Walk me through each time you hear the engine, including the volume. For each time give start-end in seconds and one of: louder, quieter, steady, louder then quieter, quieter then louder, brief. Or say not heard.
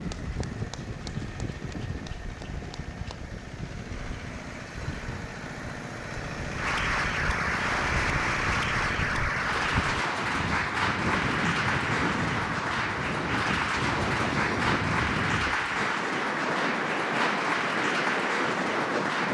0.0-9.9 louder.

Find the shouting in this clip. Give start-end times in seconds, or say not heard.
not heard.